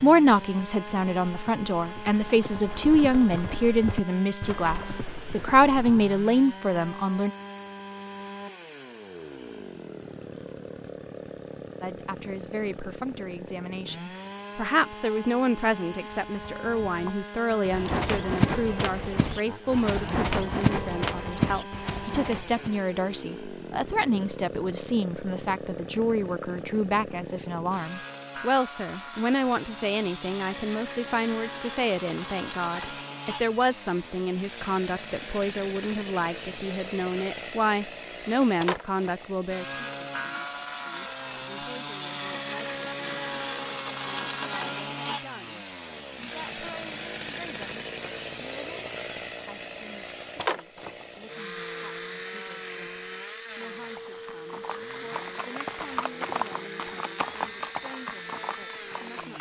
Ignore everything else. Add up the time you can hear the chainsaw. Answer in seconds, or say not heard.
59 s.